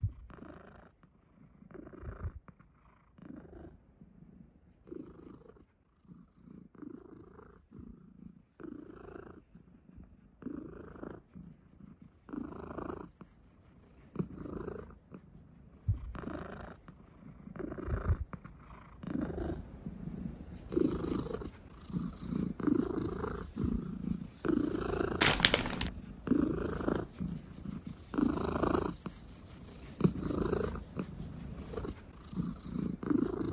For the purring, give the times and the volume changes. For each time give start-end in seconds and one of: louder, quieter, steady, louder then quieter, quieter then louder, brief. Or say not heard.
0.0-33.4 louder.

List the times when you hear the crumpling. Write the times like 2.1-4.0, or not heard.
25.2-25.9.